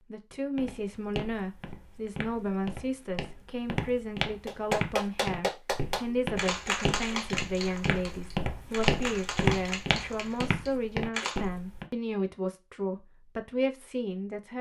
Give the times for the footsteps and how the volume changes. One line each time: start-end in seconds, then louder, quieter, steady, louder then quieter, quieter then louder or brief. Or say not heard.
0.6-11.8 louder.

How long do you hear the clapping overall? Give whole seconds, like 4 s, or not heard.
7 s.